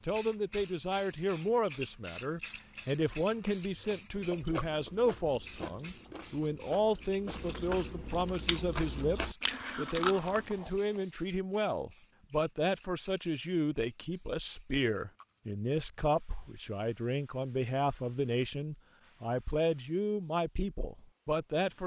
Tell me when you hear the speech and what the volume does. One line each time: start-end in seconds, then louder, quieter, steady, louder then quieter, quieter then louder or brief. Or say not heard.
0.0-21.8 steady.